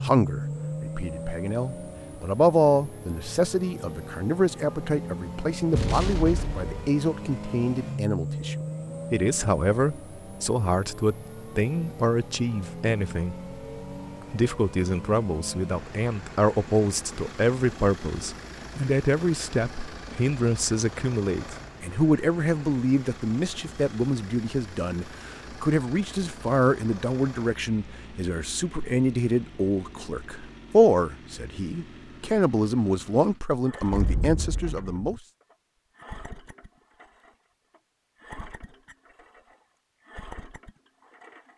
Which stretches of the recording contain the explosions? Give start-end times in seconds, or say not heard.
5.7-6.9, 33.9-35.1.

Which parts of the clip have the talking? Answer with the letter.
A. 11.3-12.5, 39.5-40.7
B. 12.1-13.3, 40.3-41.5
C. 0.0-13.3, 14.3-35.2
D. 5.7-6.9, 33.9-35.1
C.